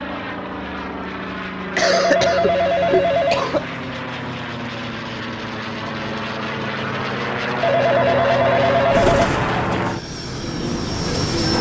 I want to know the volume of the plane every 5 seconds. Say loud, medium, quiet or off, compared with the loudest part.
medium, loud, medium.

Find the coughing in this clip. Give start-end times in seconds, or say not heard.
1.8-3.6.